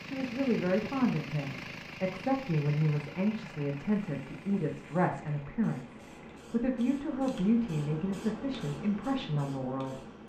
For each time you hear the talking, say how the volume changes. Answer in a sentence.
You can hear the talking from 0.0 to 10.0 s, at a steady volume.